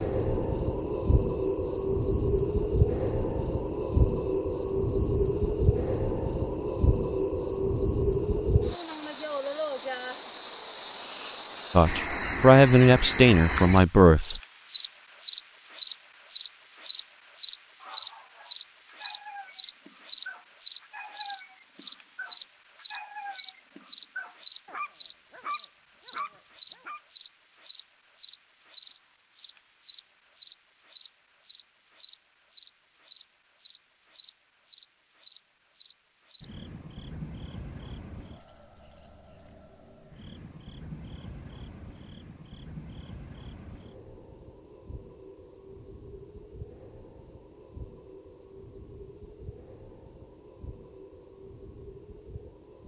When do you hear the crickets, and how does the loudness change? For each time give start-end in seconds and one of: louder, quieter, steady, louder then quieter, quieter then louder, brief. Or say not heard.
0.0-52.8 quieter.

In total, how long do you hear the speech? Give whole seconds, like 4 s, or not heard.
3 s.